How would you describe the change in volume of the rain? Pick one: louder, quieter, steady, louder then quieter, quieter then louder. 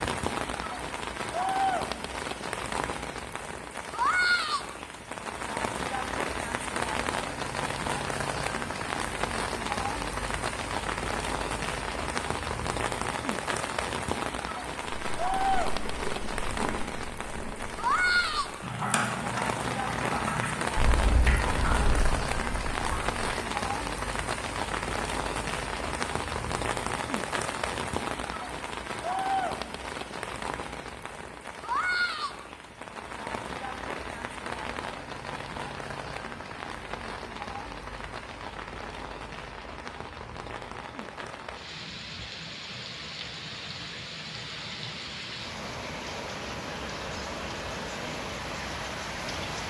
quieter.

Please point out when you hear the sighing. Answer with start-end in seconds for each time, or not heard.
not heard.